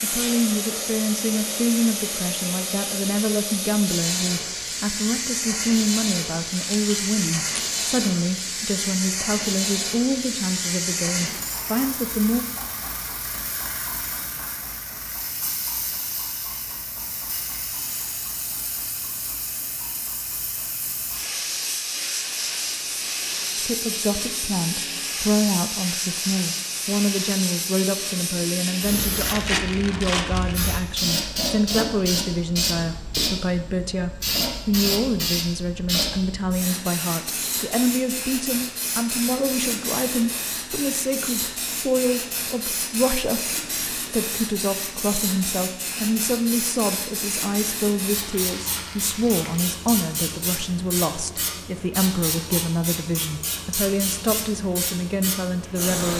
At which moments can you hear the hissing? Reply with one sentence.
You can hear the hissing from 0.0 to 56.1 s.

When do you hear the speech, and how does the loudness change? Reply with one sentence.
The speech can be heard from 0.0 to 12.4 s, at a steady volume; and from 23.6 to 56.1 s, at a steady volume.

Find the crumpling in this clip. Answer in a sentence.
The crumpling can be heard from 6.5 to 7.7 s, from 29.2 to 30.6 s and from 48.1 to 49.6 s.